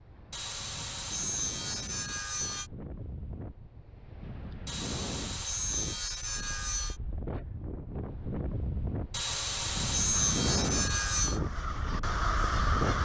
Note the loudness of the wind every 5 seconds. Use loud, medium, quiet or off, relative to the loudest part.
medium, medium, loud.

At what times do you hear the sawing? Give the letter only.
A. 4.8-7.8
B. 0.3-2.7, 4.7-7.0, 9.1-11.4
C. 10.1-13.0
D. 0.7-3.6
B.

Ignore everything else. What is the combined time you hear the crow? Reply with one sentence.
The crow can be heard for 3 seconds in total.